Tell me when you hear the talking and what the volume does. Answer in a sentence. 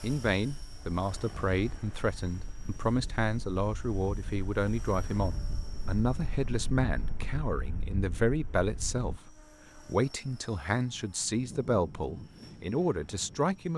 The talking can be heard from 0.0 to 13.7 s, at a steady volume.